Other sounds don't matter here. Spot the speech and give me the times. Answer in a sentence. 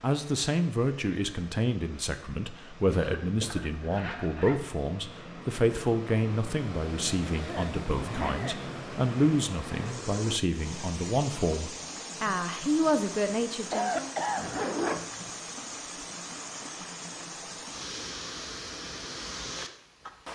The speech can be heard from 0.0 to 14.2 s.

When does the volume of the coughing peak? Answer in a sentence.
The volume of the coughing peaks at 14 seconds.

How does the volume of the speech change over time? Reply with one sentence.
The loudness of the speech stays about the same.